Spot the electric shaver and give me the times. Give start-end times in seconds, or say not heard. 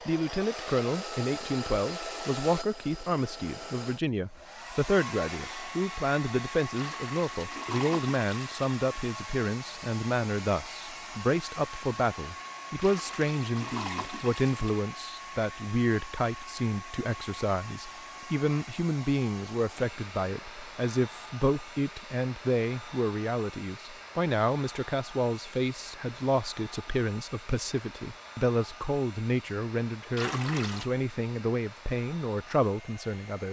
not heard.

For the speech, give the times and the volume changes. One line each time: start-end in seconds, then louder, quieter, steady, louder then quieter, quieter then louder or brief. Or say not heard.
0.1-33.4 steady.